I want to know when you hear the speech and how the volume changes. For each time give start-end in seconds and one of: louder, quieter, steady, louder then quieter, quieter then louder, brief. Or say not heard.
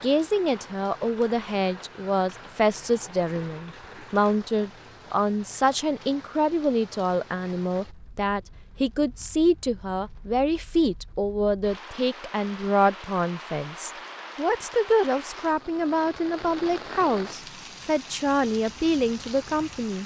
0.0-20.0 steady.